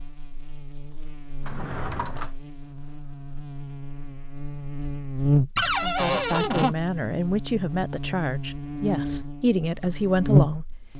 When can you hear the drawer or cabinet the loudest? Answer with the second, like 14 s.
6 s.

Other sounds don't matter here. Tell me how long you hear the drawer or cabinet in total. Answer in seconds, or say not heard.
2 s.